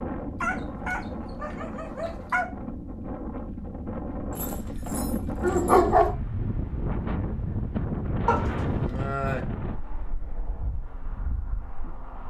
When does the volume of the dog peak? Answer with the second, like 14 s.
6 s.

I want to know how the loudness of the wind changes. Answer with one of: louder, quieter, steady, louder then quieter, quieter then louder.
louder then quieter.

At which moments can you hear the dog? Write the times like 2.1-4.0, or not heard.
0.4-2.5, 4.3-6.2, 8.2-9.4.